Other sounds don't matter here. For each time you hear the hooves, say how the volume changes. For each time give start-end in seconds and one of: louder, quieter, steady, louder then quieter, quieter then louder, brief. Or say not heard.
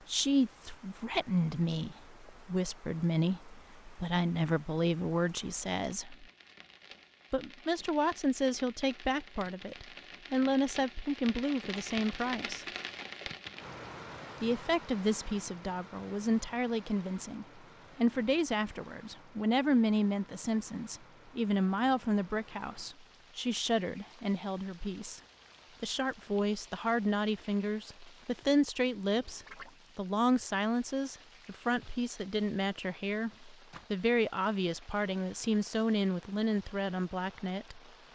not heard.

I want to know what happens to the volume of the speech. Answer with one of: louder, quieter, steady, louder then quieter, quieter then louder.
steady.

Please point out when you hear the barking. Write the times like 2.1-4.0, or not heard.
not heard.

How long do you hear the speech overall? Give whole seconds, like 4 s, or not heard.
34 s.